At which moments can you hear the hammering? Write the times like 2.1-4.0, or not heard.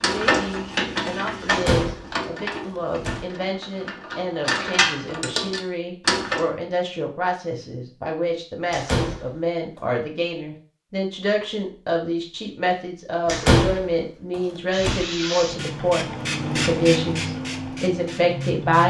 not heard.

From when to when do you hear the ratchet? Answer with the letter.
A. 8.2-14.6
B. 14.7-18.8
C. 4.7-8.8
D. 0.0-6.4
D.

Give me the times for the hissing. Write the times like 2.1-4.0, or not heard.
14.7-18.8.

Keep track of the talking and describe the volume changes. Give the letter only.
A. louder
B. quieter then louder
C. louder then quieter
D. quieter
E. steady
A.